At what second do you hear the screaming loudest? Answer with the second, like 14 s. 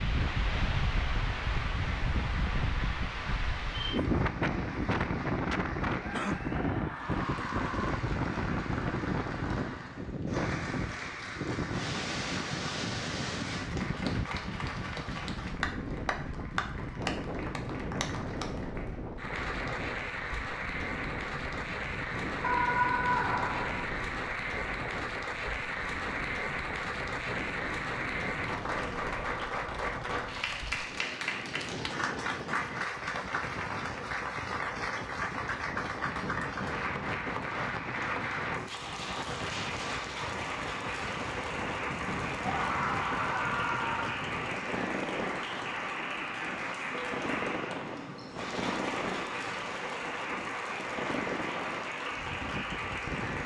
23 s.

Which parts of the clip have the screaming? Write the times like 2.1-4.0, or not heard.
6.0-8.0, 22.4-23.9, 42.4-44.2.